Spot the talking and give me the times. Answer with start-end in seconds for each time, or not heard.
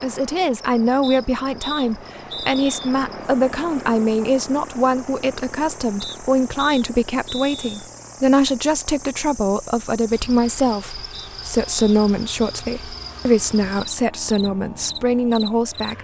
0.0-15.9.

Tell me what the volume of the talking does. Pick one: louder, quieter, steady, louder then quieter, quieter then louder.
steady.